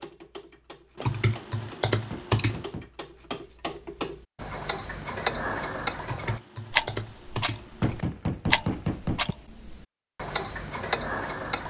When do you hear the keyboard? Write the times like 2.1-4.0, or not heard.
0.9-2.6, 6.0-8.1.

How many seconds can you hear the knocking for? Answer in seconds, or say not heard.
2 s.